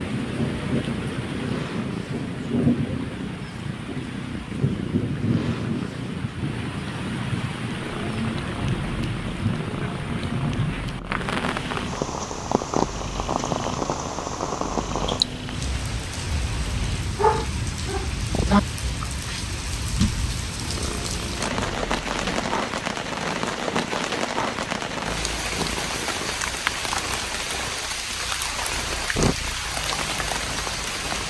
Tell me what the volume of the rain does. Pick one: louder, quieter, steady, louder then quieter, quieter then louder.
steady.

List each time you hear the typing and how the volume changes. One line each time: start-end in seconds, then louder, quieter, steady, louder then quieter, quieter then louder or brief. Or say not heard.
not heard.